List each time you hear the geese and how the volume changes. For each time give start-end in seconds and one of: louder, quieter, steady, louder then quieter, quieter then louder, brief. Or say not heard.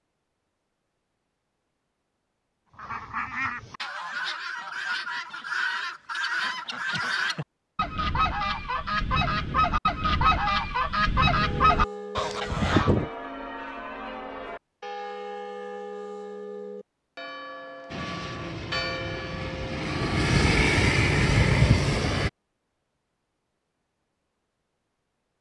2.7-13.1 louder.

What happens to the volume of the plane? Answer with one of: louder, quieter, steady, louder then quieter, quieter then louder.
louder.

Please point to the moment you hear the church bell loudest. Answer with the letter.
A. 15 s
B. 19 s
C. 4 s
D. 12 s
B.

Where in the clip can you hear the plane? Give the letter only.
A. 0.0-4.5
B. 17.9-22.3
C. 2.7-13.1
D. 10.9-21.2
B.